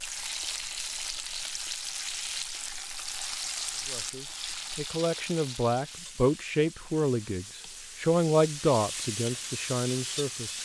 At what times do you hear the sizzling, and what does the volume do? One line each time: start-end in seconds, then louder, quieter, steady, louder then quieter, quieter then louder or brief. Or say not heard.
0.0-10.5 quieter then louder.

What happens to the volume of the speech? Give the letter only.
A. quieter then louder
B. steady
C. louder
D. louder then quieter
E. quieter
D.